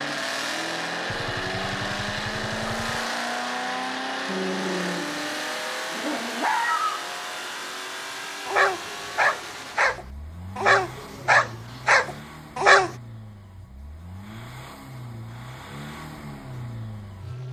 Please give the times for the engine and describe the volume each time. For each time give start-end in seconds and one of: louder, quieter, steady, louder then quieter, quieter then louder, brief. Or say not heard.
0.0-17.4 quieter.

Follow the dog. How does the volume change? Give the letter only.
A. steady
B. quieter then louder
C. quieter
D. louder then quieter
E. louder
E.